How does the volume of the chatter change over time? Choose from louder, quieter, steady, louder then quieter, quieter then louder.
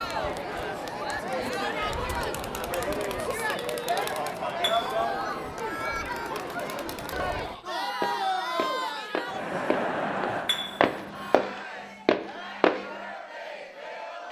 quieter.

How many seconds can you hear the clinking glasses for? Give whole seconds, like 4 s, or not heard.
2 s.